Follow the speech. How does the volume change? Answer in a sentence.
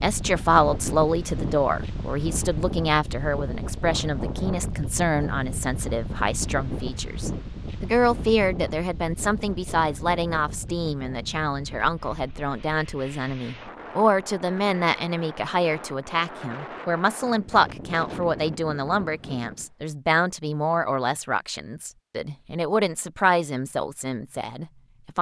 The loudness of the speech stays about the same.